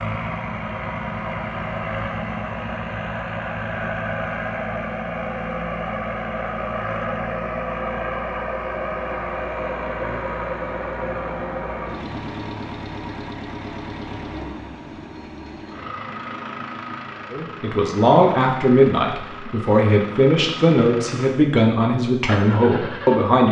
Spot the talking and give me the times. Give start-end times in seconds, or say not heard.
17.3-23.4.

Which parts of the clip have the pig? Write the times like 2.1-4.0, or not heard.
not heard.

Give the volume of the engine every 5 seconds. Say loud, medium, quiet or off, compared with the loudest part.
loud, loud, loud, medium, medium.